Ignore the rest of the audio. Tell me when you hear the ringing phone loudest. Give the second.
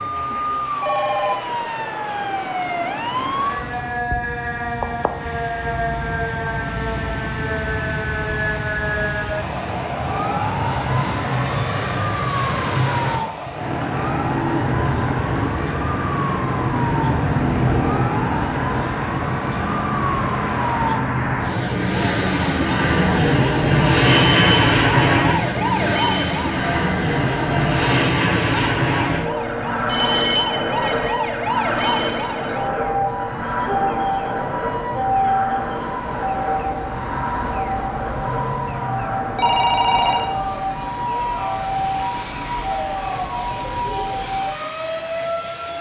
40 s.